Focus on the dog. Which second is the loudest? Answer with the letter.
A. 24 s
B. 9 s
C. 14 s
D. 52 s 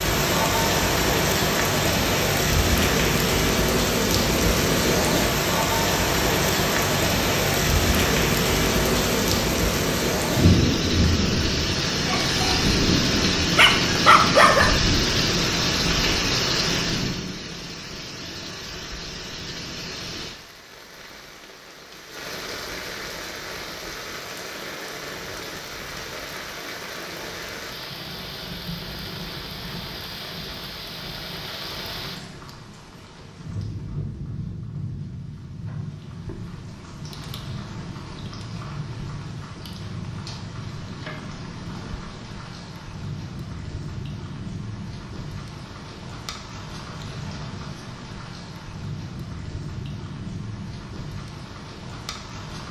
C.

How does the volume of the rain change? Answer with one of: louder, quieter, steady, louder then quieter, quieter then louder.
quieter.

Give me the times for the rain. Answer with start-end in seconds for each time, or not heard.
0.0-52.6.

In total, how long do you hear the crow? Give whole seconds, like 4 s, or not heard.
not heard.